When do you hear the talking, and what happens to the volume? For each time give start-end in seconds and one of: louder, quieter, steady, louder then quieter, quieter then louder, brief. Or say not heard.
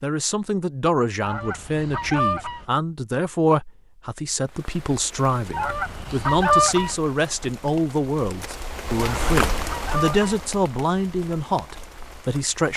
0.0-12.7 steady.